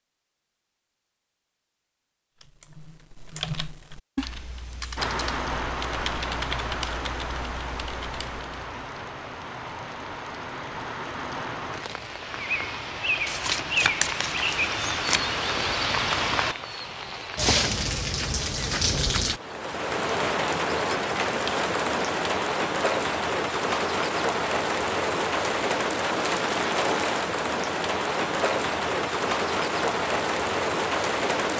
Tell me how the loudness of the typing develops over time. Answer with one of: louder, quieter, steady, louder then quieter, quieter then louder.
quieter.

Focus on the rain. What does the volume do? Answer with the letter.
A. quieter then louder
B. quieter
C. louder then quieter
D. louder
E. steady
D.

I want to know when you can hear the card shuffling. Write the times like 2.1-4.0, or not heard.
13.2-15.2.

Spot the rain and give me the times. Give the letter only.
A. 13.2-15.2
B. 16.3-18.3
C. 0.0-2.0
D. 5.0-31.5
D.